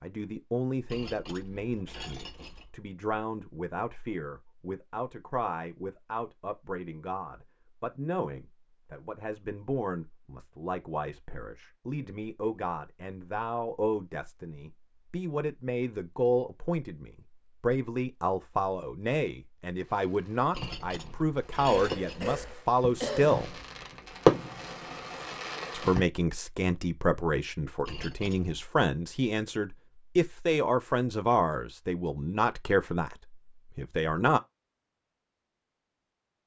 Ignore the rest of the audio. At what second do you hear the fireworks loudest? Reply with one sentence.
The volume of the fireworks peaks at 24 seconds.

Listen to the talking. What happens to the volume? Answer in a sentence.
The loudness of the talking goes up.